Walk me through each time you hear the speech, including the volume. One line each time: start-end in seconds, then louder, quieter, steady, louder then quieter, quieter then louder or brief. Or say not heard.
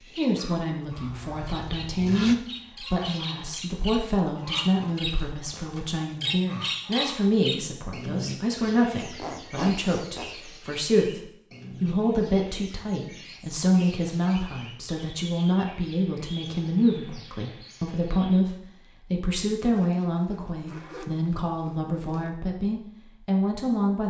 0.1-24.0 steady.